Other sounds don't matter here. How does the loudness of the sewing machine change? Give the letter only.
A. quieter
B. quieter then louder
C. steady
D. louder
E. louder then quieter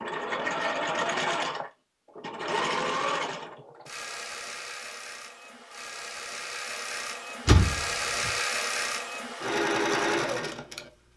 B.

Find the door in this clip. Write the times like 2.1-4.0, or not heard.
7.5-8.3.